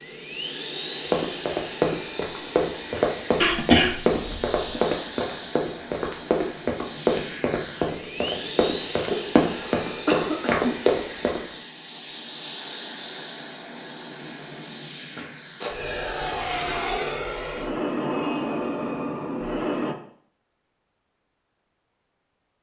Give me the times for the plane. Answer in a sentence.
The plane can be heard from 0.0 to 19.9 s.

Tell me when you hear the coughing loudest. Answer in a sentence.
The volume of the coughing peaks at 4 seconds.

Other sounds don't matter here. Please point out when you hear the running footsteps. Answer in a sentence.
You can hear the running footsteps from 1.1 to 11.4 s.